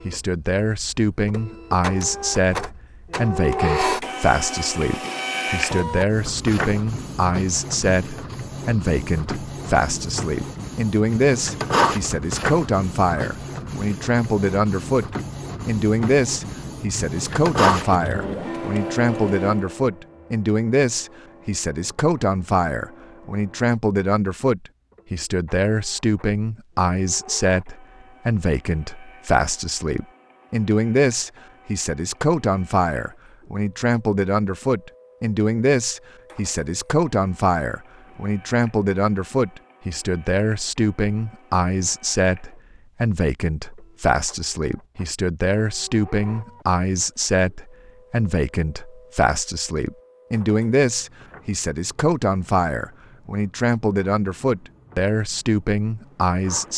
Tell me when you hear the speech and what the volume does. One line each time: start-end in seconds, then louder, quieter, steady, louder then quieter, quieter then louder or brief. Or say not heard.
0.1-56.7 steady.